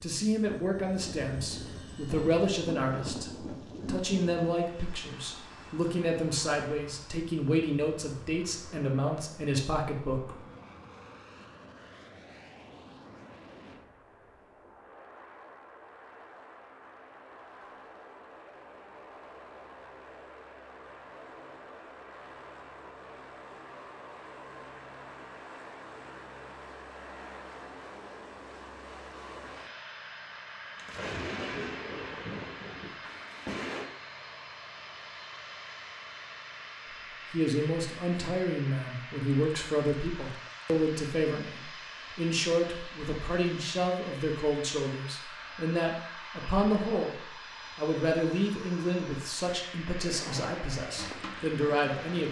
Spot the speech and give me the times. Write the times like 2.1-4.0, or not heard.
0.0-10.4, 37.3-52.2.